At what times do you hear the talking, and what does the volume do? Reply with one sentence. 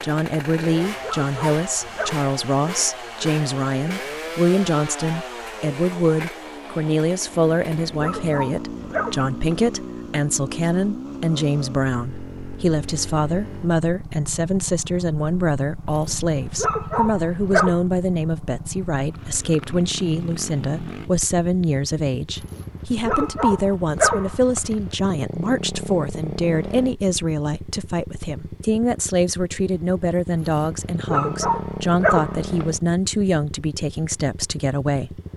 You can hear the talking from 0.0 to 35.2 s, at a steady volume.